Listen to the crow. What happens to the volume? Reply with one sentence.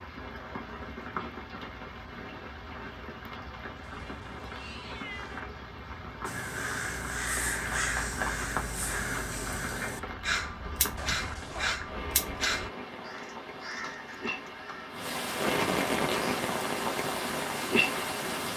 The volume of the crow goes down.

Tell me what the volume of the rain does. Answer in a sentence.
The loudness of the rain goes up.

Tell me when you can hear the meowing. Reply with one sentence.
The meowing can be heard from 3.9 to 5.4 s and from 10.9 to 11.8 s.